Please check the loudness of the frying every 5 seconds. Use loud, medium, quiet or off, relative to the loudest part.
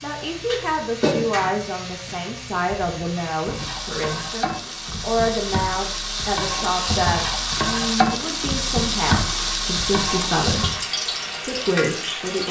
medium, loud, loud.